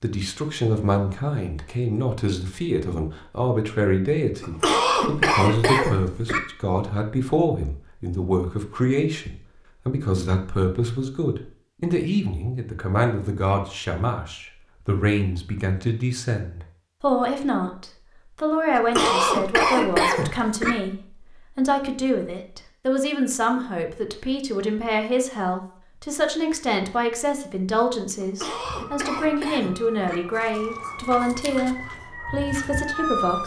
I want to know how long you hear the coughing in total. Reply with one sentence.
The coughing can be heard for 6 seconds in total.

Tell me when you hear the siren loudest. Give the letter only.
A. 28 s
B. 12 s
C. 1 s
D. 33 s
D.